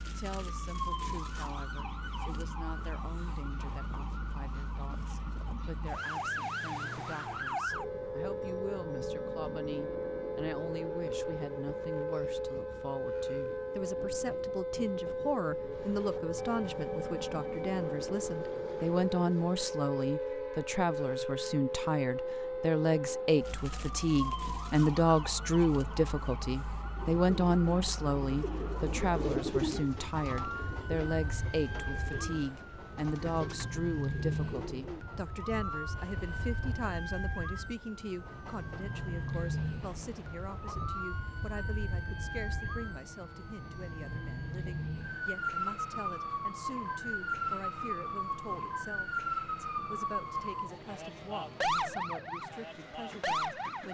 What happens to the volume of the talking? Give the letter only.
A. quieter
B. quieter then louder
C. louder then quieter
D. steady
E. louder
C.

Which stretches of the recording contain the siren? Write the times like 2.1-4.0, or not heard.
0.0-53.8.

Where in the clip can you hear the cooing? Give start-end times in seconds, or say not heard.
26.9-35.0.